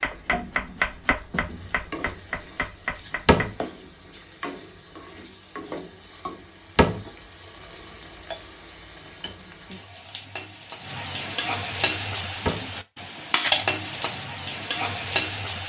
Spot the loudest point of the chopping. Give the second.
1 s.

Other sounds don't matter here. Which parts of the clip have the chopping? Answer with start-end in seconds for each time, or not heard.
0.0-3.5.